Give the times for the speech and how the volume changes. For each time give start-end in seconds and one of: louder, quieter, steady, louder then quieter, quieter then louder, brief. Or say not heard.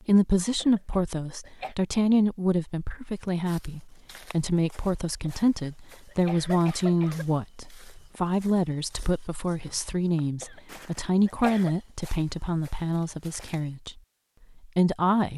0.1-13.9 steady
14.7-15.3 brief.